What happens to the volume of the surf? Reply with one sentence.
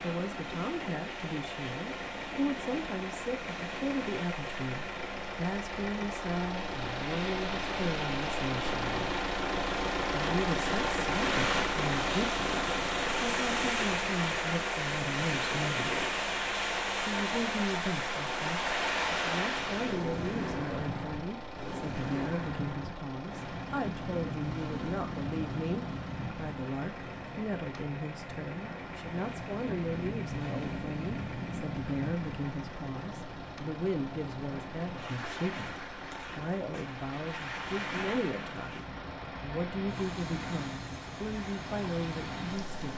The loudness of the surf goes up, then down.